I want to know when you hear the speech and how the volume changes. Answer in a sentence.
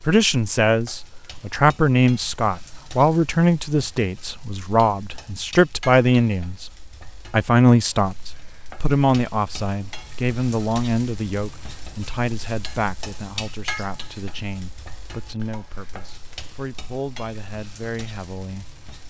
The speech can be heard from 0.0 to 18.7 s, getting quieter.